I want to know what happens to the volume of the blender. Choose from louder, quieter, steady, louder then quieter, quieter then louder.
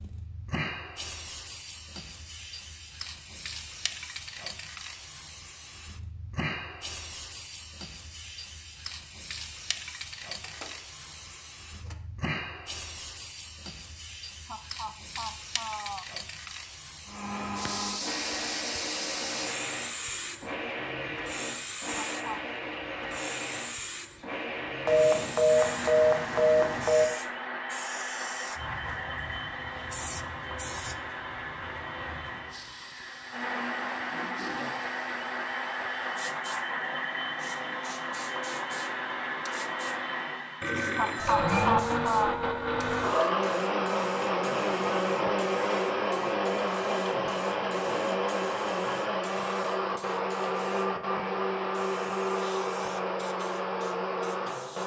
louder.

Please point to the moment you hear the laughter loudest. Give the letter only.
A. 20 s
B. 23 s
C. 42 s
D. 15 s
C.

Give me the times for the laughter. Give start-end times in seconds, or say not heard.
14.4-16.1, 21.9-22.4, 41.0-42.4.